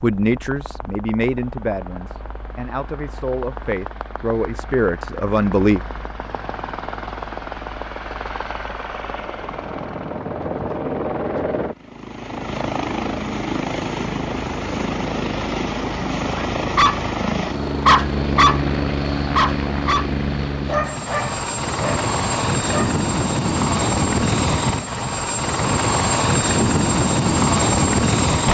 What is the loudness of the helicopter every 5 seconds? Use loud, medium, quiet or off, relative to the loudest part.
quiet, quiet, medium, medium, loud, loud.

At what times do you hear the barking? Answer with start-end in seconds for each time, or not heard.
16.4-17.1, 17.9-18.8, 19.4-22.9.